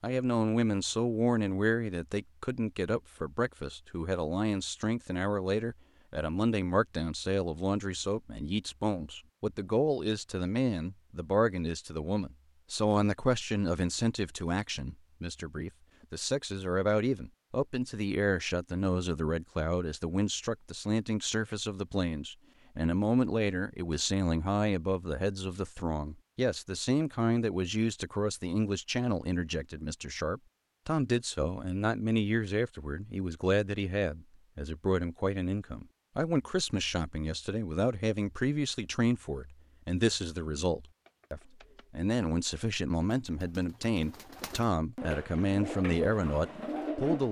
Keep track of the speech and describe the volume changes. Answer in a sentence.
The volume of the speech stays about the same.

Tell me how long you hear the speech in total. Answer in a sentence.
The speech can be heard for 47 seconds in total.